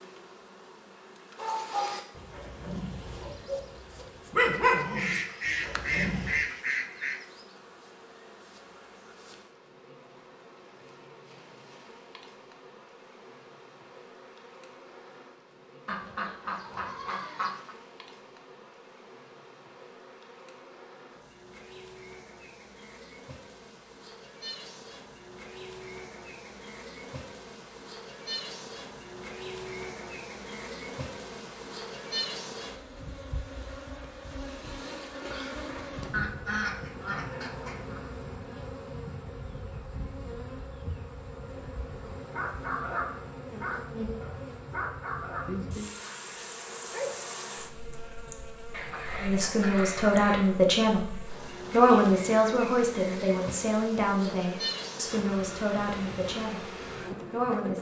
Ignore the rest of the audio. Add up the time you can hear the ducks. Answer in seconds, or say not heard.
8 s.